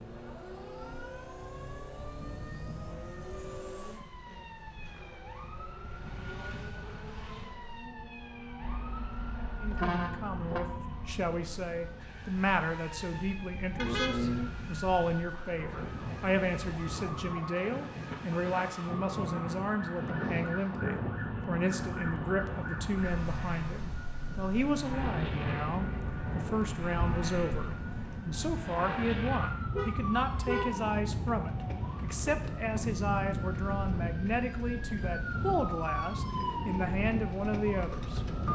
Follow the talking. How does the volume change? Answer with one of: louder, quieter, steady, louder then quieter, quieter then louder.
steady.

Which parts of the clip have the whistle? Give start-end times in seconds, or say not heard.
not heard.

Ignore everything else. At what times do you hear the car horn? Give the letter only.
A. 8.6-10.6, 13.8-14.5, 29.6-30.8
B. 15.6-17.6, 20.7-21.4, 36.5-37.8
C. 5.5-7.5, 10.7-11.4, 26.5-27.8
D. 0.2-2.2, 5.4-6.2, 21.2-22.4
A.